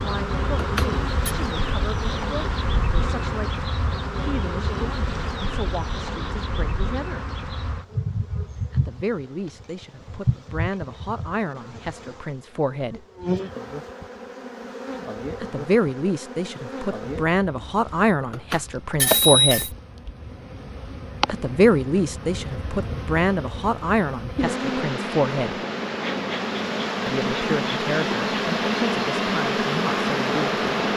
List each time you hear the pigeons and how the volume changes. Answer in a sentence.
The pigeons can't be heard in this clip.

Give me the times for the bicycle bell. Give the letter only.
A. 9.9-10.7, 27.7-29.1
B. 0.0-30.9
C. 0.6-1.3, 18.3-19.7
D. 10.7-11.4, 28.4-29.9
C.